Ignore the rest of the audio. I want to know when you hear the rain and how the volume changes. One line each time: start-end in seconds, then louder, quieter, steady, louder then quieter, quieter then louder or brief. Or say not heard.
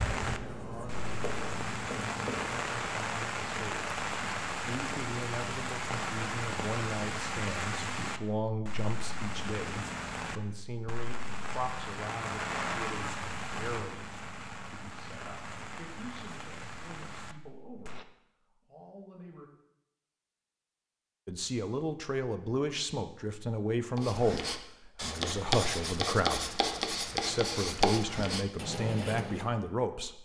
0.0-18.1 quieter.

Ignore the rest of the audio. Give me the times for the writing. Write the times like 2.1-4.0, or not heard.
0.0-2.7, 23.9-29.4.